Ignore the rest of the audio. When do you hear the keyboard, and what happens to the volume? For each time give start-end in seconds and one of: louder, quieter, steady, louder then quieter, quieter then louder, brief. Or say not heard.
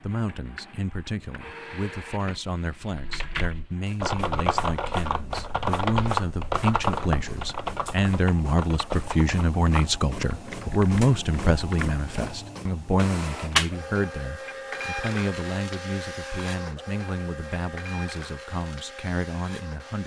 2.9-12.1 quieter.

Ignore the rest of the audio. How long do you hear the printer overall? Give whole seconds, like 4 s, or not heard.
20 s.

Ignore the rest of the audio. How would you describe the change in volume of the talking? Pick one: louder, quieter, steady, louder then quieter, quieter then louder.
louder then quieter.